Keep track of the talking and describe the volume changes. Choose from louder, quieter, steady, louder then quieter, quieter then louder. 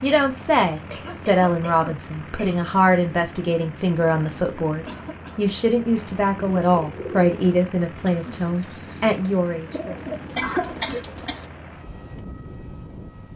steady.